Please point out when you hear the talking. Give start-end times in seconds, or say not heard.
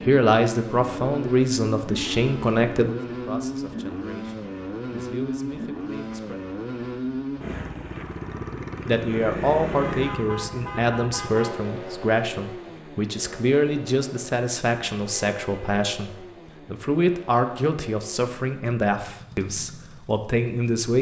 0.1-6.4, 8.8-20.9.